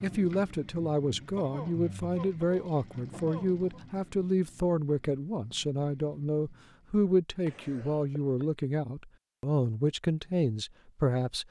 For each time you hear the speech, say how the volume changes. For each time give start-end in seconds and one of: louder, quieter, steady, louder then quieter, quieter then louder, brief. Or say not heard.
0.0-11.4 steady.